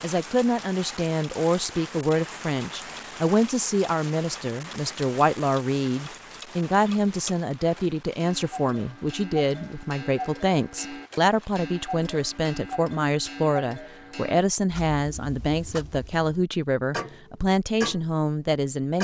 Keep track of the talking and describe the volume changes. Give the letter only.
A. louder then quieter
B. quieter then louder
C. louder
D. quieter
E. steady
E.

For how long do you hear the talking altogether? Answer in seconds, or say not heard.
19 s.